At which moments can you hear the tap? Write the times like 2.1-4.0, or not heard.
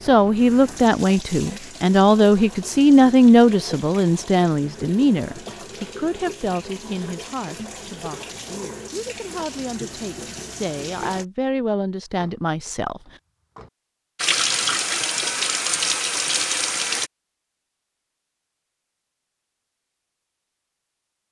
0.0-11.2, 14.2-17.1.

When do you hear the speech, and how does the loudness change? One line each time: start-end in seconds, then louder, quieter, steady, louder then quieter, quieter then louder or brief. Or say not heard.
0.0-13.0 quieter then louder.